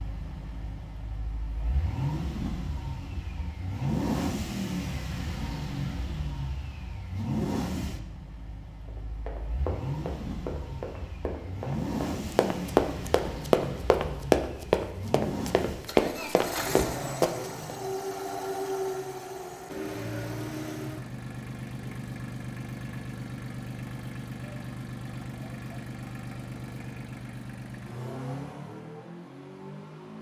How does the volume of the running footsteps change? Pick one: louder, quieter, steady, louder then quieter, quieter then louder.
louder.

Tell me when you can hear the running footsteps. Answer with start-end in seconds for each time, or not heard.
8.8-17.5.